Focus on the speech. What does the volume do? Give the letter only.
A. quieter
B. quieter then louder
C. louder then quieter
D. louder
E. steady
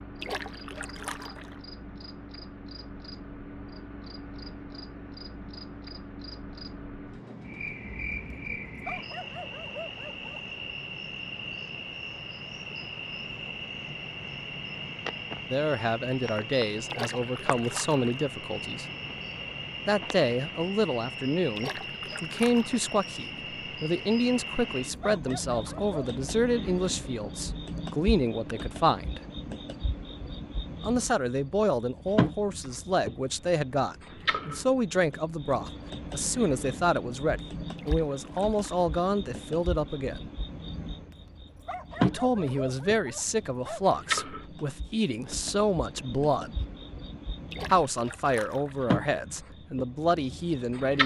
E.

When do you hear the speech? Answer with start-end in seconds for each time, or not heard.
15.5-18.9, 19.9-29.2, 30.8-40.2, 42.0-46.6, 47.7-51.0.